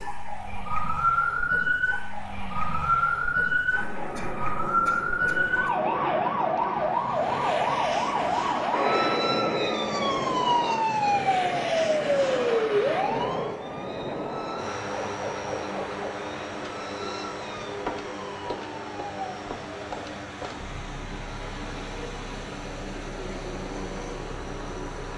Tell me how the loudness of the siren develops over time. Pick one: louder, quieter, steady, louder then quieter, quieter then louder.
quieter.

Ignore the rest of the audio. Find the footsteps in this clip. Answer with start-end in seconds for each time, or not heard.
not heard.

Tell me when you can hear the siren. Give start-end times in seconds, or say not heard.
0.0-25.1.